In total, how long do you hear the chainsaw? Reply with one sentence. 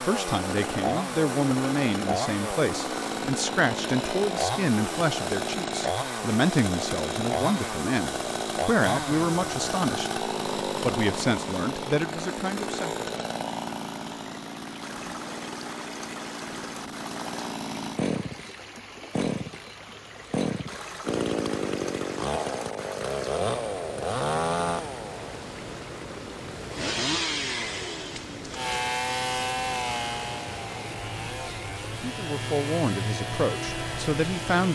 The chainsaw can be heard for 35 seconds in total.